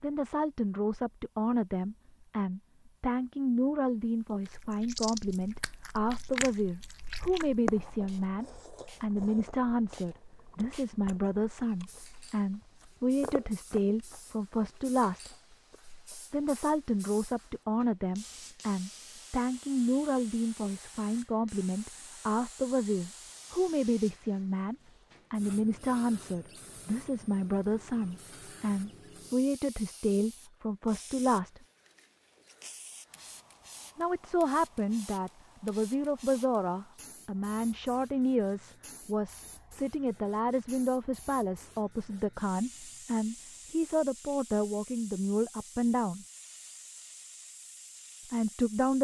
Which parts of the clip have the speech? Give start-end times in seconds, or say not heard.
0.0-15.3, 16.3-31.6, 34.0-46.2, 48.3-48.9.